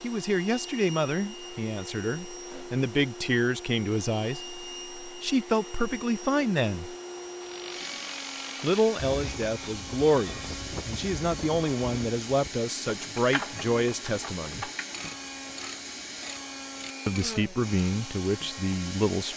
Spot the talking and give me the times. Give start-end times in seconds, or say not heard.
0.0-7.0, 8.6-14.7, 17.1-19.3.